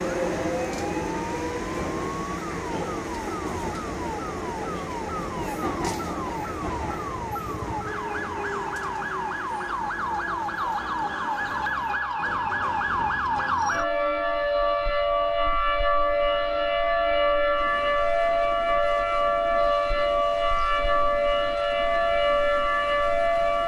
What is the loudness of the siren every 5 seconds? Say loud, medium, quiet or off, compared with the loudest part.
quiet, medium, loud, loud, loud.